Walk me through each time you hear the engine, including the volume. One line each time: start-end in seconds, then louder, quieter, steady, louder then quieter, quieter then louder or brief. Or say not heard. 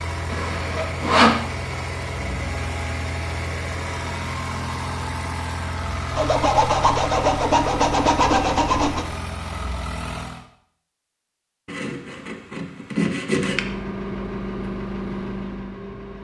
0.0-10.4 steady
13.3-16.1 brief.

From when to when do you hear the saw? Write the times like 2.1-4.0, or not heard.
0.3-1.4, 6.2-9.1, 11.7-13.6.